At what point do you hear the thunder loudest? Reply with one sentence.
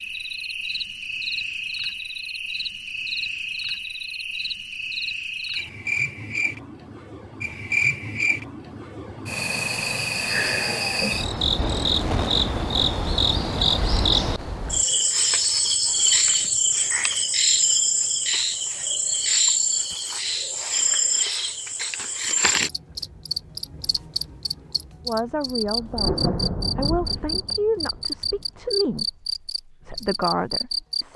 The volume of the thunder peaks at 26 seconds.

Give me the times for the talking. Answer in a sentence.
The talking can be heard from 25.1 to 31.1 s.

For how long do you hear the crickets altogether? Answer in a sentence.
You can hear the crickets for 31 seconds altogether.